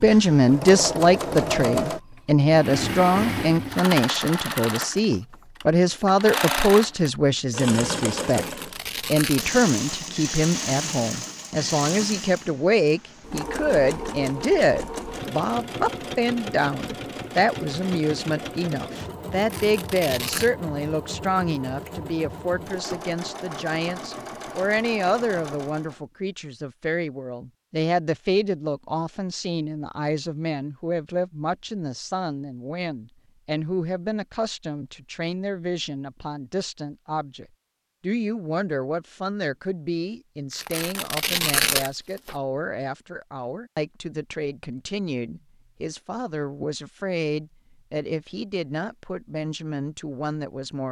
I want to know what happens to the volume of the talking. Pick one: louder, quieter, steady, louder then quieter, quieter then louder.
quieter.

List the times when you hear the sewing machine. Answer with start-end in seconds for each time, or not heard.
0.0-26.0.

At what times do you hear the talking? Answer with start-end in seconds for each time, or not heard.
0.0-8.4, 9.1-50.8.